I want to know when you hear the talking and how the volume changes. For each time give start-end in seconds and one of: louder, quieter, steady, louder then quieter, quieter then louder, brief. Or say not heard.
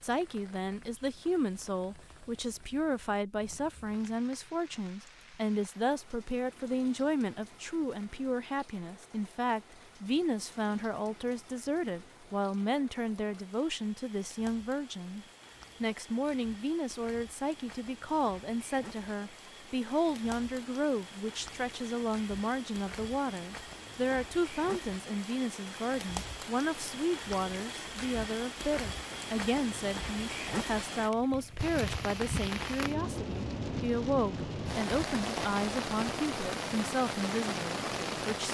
0.0-38.4 steady.